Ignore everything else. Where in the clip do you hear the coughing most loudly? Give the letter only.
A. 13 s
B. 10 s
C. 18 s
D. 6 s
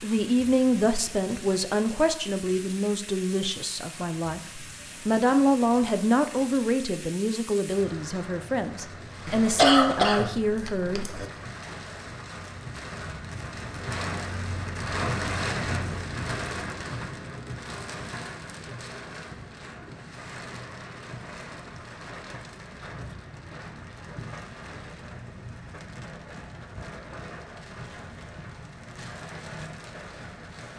B.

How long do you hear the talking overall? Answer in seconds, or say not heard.
11 s.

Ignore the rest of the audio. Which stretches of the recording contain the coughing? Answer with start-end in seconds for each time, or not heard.
9.2-11.3.